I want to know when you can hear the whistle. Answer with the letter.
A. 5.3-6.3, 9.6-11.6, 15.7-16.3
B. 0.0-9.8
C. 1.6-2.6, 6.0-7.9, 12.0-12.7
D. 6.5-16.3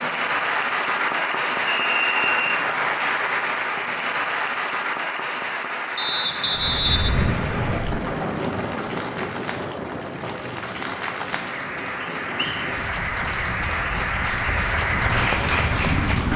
C.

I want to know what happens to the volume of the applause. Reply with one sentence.
The loudness of the applause goes down, then up.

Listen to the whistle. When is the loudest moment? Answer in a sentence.
The loudest moment of the whistle is at 7 seconds.